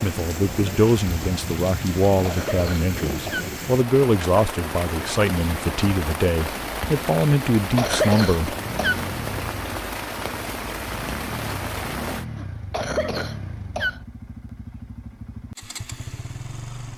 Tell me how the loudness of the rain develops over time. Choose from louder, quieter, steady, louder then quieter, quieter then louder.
steady.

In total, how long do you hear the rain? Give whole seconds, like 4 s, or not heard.
12 s.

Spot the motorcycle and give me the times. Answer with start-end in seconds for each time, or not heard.
8.6-16.9.